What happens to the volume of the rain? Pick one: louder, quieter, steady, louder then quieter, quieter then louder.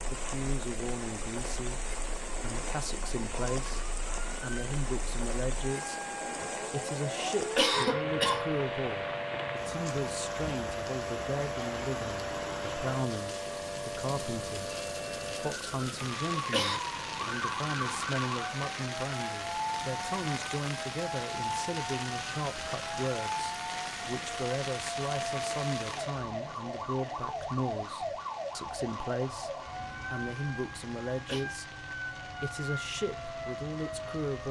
quieter.